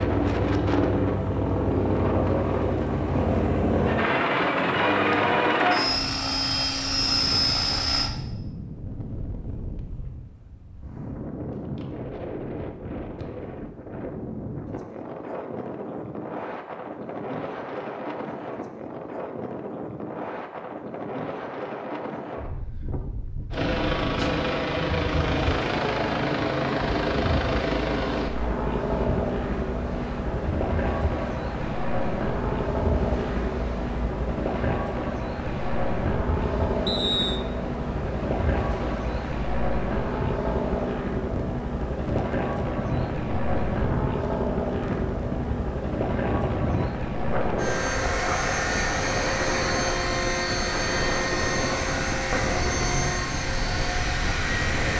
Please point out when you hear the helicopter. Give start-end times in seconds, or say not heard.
0.0-8.1, 23.5-54.9.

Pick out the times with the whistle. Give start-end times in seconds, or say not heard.
36.9-37.5.